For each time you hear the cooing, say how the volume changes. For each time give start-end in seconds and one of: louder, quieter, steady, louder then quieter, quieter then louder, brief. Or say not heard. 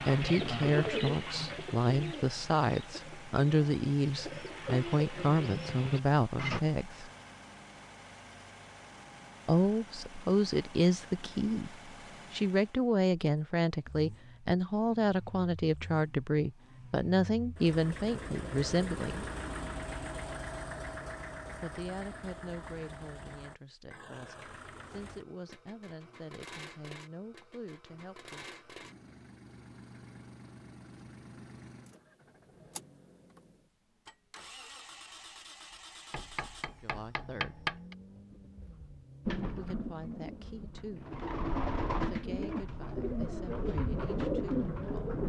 0.0-6.6 quieter then louder
39.2-45.2 louder.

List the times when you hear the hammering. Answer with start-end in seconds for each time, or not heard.
36.1-38.0.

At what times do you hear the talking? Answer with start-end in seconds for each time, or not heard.
0.0-7.1, 9.4-19.3, 21.6-28.4, 36.8-37.6, 39.5-41.1, 41.9-45.2.